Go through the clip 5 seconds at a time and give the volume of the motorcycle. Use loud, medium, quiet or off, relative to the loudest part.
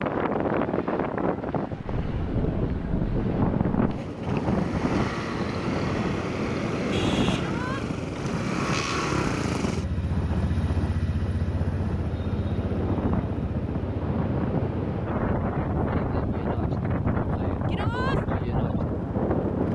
medium, loud, loud, medium.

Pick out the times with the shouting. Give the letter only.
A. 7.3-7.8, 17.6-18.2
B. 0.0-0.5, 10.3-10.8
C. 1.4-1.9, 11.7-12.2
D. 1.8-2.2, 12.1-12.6
A.